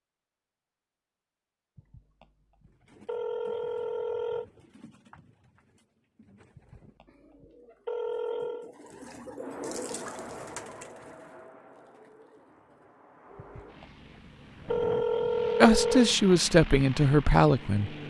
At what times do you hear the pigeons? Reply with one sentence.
The pigeons can be heard from 2.6 to 13.8 s.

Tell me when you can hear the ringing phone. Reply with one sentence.
You can hear the ringing phone from 1.8 to 4.5 s, from 6.5 to 8.7 s and from 13.3 to 16.1 s.